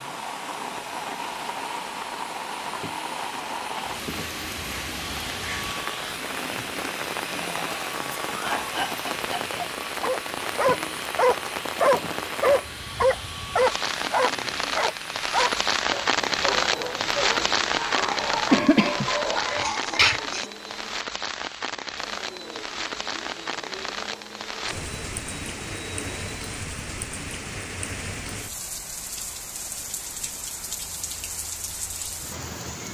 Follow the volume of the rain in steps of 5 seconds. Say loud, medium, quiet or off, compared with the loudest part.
medium, medium, medium, loud, medium, medium, medium.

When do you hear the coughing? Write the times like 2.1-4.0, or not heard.
7.3-9.8, 18.5-20.5.